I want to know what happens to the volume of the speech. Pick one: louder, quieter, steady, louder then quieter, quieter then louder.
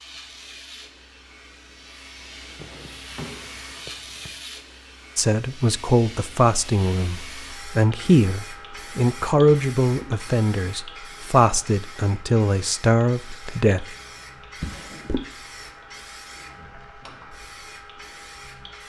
steady.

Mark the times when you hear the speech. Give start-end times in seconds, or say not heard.
5.2-13.8.